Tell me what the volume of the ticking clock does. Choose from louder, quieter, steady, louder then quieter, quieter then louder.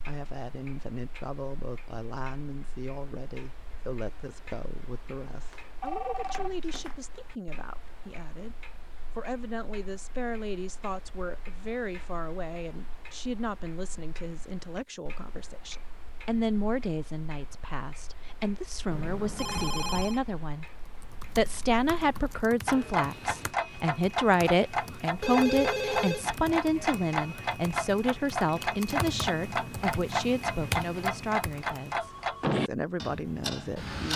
louder.